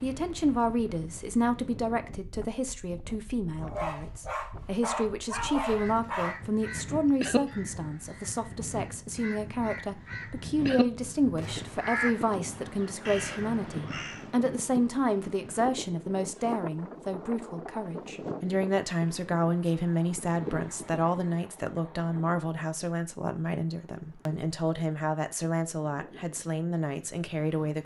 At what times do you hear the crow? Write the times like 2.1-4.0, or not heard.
5.8-14.2.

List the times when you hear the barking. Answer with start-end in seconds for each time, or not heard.
3.6-6.4.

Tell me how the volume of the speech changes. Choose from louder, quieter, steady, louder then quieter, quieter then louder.
steady.